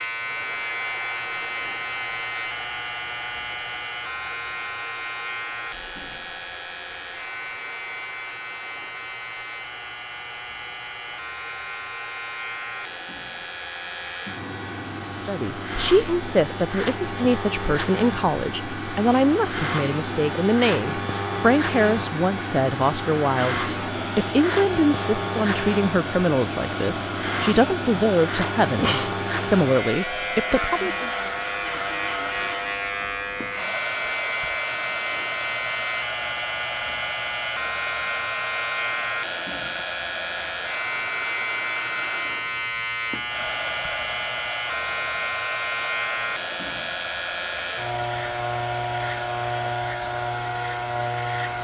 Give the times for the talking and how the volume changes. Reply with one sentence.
You can hear the talking from 15.2 to 31.1 s, at a steady volume.